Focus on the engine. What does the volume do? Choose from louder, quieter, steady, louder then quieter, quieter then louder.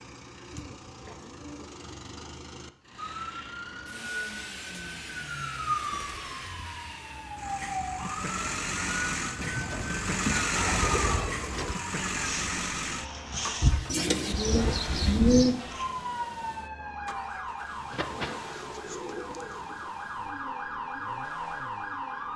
louder then quieter.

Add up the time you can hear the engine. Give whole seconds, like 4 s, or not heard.
22 s.